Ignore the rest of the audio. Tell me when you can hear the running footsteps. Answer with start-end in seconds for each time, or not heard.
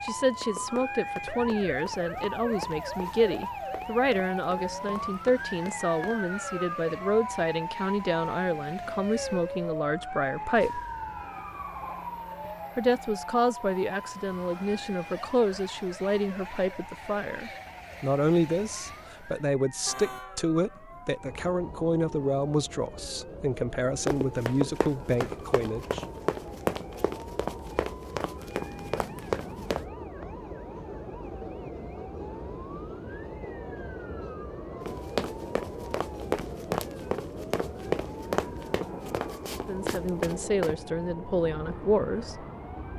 0.3-6.2, 24.1-29.9, 34.8-40.8.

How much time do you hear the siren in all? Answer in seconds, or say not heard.
43 s.